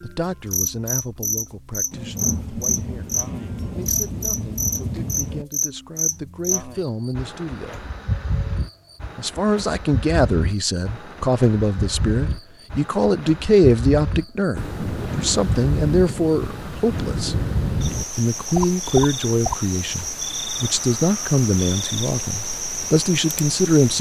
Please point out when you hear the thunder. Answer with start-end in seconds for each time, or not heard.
1.9-5.5, 14.6-18.1.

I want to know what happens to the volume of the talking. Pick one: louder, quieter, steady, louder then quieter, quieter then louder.
louder.